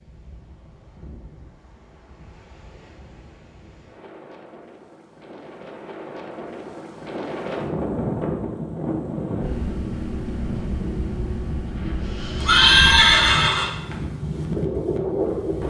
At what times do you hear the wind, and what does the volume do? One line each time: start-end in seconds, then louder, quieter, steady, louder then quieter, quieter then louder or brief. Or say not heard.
0.0-15.6 louder.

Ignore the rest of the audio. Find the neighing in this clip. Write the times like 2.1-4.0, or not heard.
12.4-13.9.